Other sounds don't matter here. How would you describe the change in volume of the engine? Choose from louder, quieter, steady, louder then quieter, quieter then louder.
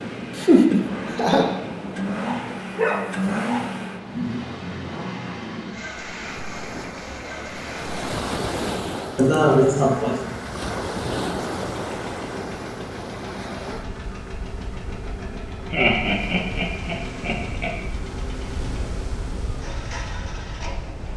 quieter.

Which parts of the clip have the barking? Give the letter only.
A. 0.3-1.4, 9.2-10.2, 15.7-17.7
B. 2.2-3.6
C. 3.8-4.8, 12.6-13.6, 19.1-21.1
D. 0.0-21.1
B.